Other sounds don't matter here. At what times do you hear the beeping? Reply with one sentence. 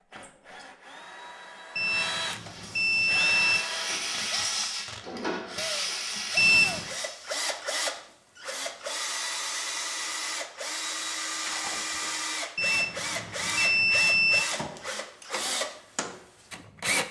The beeping can be heard from 1.8 to 3.6 s, from 6.3 to 7.0 s and from 12.6 to 14.4 s.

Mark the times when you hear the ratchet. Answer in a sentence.
You can't hear the ratchet here.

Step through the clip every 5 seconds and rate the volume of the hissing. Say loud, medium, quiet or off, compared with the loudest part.
loud, loud, off, off.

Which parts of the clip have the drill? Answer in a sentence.
The drill can be heard from 0.0 to 17.0 s.